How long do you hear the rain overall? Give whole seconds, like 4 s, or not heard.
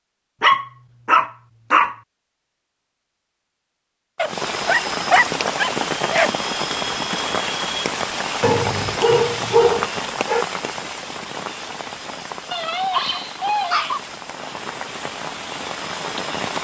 12 s.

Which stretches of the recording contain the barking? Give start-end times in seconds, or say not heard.
0.4-1.9, 4.2-6.3, 8.4-10.4, 12.5-14.0.